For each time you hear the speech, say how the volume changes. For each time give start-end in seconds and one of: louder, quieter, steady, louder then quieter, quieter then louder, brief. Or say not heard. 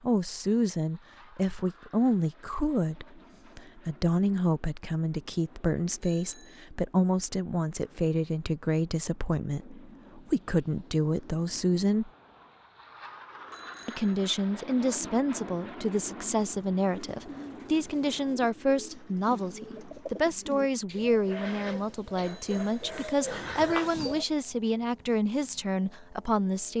0.0-12.1 steady
13.8-26.7 steady.